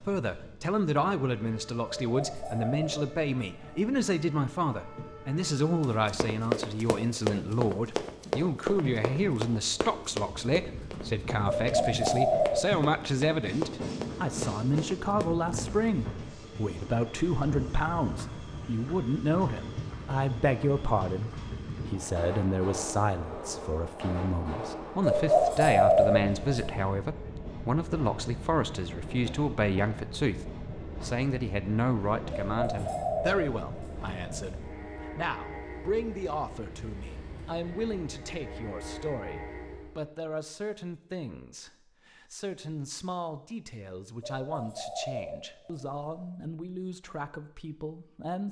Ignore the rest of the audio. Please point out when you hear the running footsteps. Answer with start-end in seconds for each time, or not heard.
5.8-15.8.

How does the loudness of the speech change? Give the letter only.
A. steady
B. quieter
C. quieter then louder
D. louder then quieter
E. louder
B.